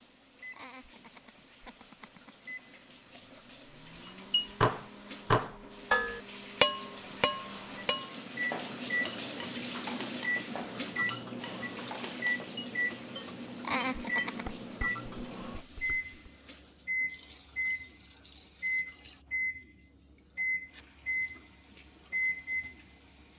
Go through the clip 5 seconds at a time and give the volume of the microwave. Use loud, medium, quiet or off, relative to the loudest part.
quiet, medium, loud, loud, loud.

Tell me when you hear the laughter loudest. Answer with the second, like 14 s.
14 s.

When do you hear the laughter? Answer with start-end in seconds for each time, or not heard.
0.5-2.4, 13.6-14.6.